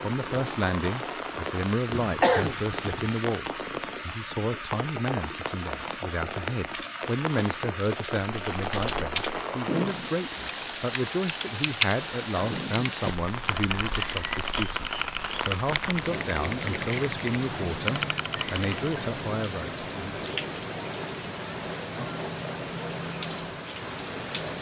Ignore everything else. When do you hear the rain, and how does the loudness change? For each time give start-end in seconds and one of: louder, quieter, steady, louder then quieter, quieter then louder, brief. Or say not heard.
0.0-24.5 steady.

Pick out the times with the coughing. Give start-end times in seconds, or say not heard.
2.0-3.1.